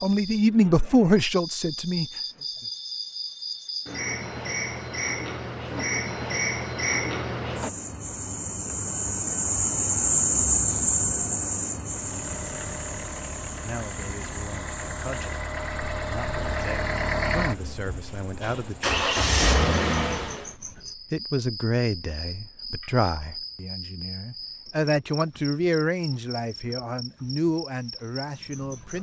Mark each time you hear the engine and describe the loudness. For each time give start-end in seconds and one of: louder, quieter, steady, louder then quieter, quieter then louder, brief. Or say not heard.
11.8-20.6 louder.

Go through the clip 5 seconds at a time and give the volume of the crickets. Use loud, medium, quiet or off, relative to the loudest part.
medium, loud, loud, quiet, quiet, quiet.